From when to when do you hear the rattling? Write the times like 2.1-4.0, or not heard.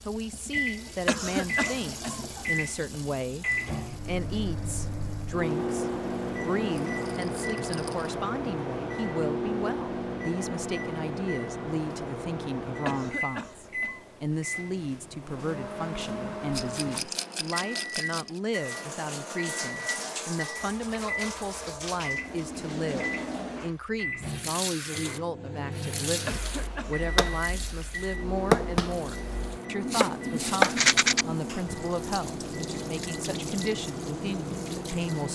6.8-8.1, 16.6-18.3, 30.6-31.2.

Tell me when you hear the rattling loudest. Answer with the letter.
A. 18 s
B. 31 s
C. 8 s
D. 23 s
B.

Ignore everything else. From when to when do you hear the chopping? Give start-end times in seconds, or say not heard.
26.6-31.6.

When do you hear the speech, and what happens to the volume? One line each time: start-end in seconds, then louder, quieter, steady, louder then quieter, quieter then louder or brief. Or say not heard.
0.1-35.3 steady.